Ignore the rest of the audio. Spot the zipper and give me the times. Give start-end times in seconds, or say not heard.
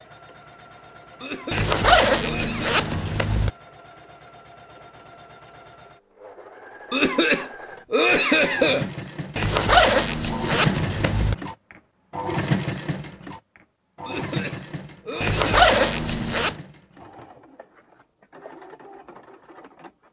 1.5-3.5, 9.3-11.3, 15.2-16.6.